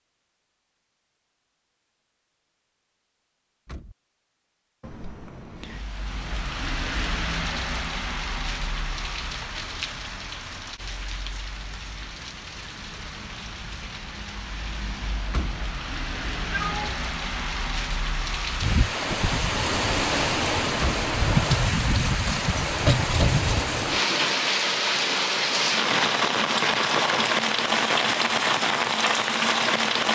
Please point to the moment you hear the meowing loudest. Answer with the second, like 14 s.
17 s.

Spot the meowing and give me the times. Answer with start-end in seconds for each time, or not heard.
4.8-5.8, 16.1-17.0.